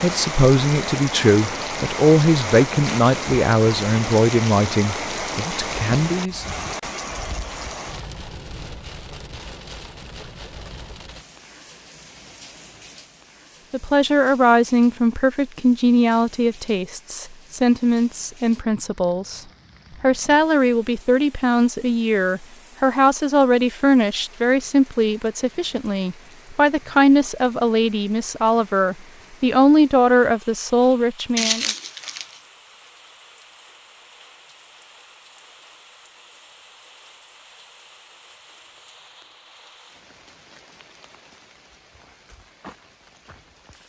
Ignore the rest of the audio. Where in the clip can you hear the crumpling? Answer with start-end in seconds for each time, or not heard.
31.4-32.4.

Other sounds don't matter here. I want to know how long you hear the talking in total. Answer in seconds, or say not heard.
24 s.